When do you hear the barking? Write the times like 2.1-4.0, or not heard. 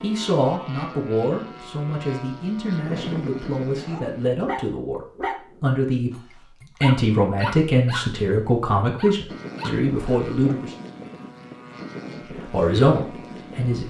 3.8-10.2.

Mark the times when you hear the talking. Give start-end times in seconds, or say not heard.
0.0-10.8, 12.5-13.8.